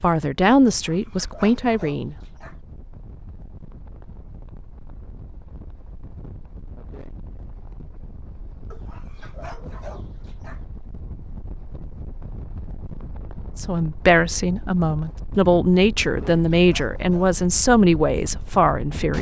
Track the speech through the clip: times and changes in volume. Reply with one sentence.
The speech can be heard briefly from 0.0 to 2.1 s; and from 13.6 to 19.1 s, at a steady volume.